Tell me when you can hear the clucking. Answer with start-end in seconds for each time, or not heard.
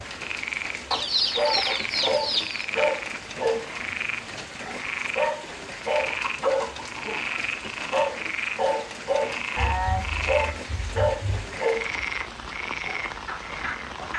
0.9-2.6, 6.1-7.2, 9.6-11.6.